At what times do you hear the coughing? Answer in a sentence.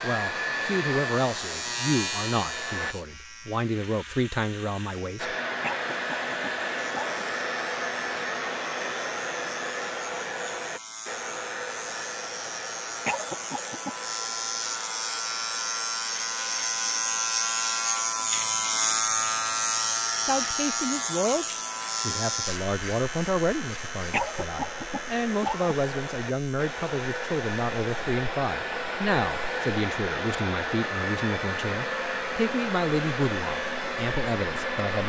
You can hear the coughing from 5.6 to 7.2 s, from 13.1 to 13.9 s and from 24.1 to 25.9 s.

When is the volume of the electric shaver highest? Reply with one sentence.
The volume of the electric shaver peaks at 19 seconds.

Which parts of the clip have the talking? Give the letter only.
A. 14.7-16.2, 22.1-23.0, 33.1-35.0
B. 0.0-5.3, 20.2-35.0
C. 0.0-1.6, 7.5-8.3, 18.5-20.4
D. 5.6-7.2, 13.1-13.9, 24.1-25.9
B.